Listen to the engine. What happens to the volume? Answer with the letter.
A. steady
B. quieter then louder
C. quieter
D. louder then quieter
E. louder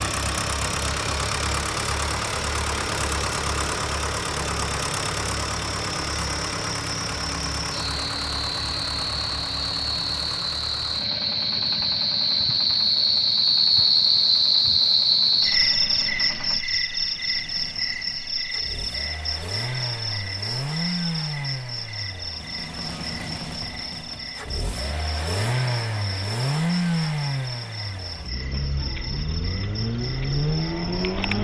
B.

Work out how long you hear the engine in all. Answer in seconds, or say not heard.
31 s.